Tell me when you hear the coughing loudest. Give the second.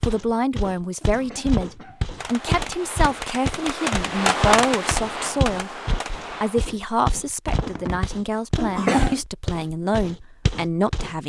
9 s.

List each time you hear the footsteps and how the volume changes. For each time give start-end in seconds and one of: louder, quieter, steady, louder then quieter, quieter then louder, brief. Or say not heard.
0.0-11.2 steady.